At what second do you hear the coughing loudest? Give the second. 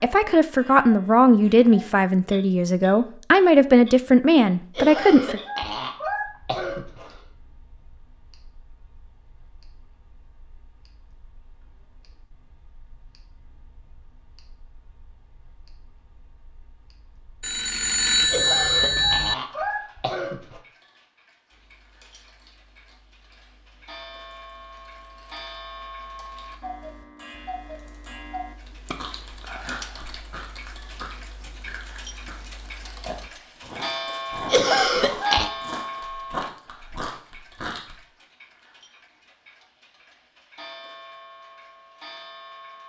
35 s.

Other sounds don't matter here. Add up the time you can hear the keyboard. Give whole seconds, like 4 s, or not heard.
12 s.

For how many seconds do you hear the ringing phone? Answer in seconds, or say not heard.
2 s.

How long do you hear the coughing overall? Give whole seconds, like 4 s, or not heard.
6 s.